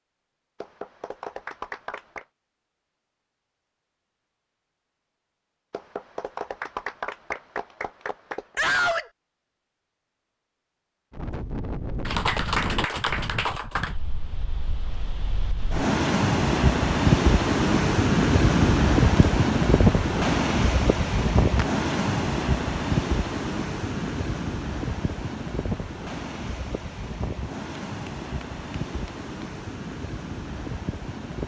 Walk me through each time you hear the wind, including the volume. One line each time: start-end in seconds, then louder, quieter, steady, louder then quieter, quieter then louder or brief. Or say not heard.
11.1-31.4 louder then quieter.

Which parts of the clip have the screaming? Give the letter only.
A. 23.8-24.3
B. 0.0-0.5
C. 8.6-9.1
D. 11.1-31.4
C.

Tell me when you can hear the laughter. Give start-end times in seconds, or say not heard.
not heard.